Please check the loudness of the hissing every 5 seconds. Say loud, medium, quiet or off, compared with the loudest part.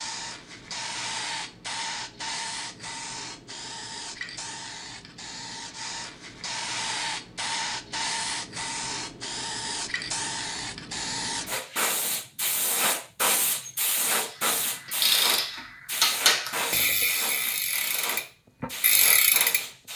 medium, loud, loud, loud.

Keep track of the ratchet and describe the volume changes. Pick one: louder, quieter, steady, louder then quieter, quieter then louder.
quieter then louder.